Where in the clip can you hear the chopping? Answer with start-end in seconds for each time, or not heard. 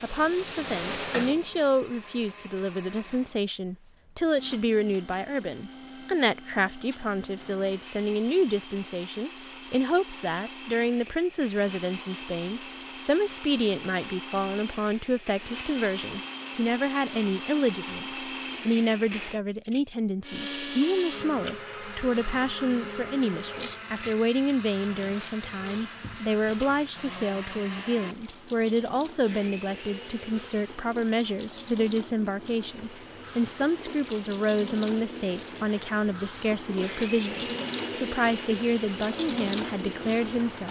not heard.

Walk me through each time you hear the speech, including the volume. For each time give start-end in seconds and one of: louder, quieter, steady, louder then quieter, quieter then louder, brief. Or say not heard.
0.0-40.6 steady.